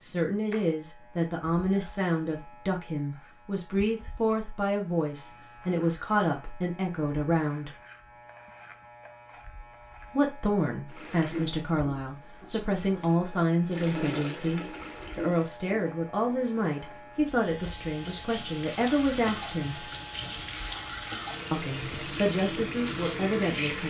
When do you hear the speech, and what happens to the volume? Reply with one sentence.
The speech can be heard from 0.0 to 7.7 s, at a steady volume; from 10.1 to 19.9 s, at a steady volume; and briefly from 21.5 to 23.8 s.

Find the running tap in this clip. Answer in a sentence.
You can hear the running tap from 10.8 to 23.8 s.